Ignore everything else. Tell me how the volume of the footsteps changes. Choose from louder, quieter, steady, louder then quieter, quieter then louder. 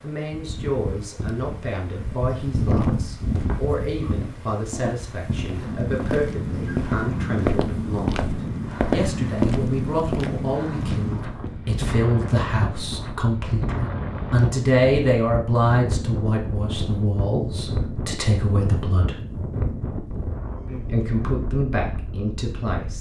louder then quieter.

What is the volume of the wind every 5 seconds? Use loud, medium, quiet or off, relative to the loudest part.
loud, loud, loud, loud, medium.